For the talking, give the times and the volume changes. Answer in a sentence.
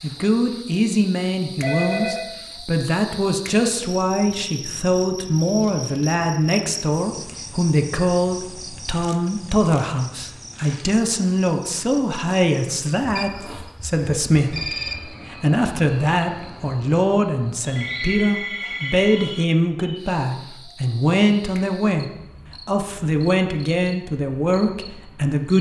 The talking can be heard from 0.0 to 25.5 s, at a steady volume.